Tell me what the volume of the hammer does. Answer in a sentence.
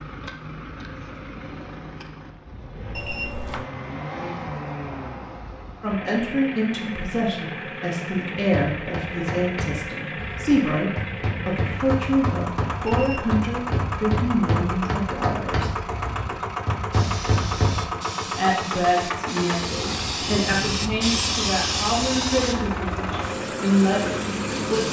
The loudness of the hammer goes up.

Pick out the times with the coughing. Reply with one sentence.
The coughing can't be heard in this clip.